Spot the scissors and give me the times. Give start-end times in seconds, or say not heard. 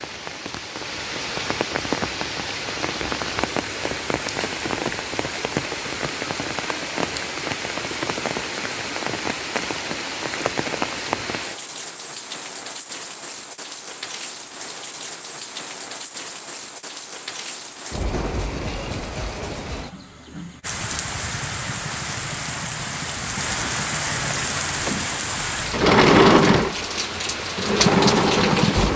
not heard.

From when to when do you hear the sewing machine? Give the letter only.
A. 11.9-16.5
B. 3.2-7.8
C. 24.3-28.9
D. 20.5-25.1
C.